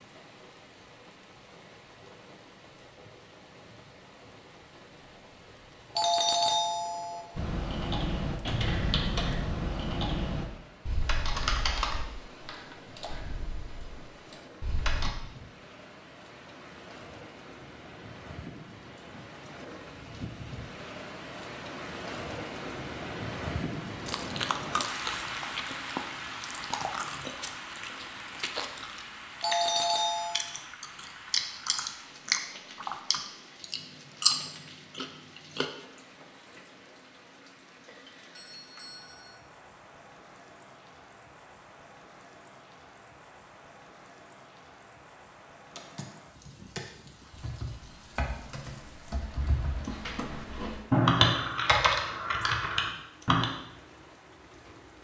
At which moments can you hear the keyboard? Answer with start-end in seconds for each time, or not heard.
7.3-15.1, 45.7-53.5.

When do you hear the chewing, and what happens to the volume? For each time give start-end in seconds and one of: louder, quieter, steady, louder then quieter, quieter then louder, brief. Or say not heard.
24.1-35.7 louder.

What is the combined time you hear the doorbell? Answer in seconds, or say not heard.
3 s.